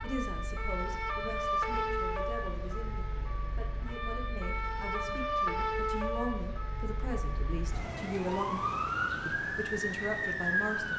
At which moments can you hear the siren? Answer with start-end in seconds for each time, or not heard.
0.0-10.9.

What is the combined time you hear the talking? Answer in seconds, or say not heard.
10 s.